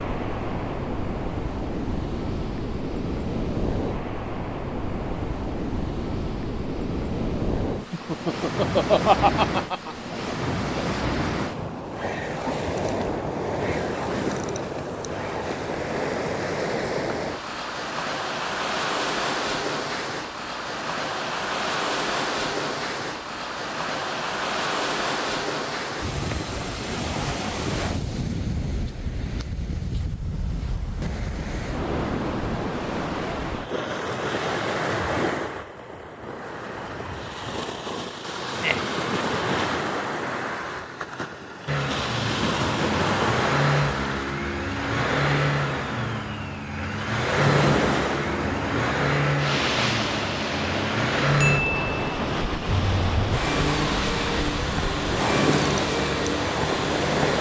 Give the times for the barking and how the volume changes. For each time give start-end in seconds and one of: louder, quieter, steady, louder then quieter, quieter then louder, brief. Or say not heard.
not heard.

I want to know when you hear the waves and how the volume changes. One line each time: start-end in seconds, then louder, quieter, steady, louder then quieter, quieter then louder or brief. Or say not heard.
0.0-57.3 steady.